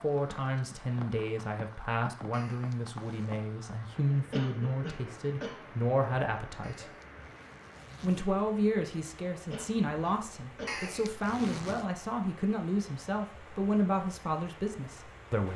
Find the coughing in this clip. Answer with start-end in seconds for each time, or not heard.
4.3-5.6, 9.5-10.9.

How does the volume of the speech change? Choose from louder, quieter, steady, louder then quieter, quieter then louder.
steady.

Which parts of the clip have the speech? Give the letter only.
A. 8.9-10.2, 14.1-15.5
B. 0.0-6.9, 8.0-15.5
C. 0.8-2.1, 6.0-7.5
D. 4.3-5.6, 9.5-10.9
B.